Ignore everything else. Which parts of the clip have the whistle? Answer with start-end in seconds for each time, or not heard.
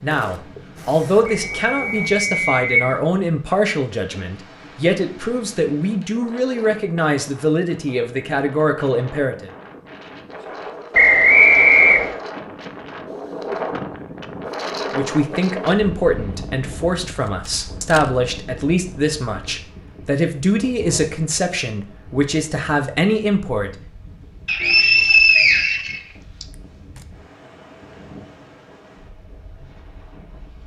1.3-3.0, 10.9-12.2, 24.4-26.4.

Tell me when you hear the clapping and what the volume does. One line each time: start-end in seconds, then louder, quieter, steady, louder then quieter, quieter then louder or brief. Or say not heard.
not heard.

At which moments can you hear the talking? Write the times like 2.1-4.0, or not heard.
0.0-9.5, 14.9-23.7.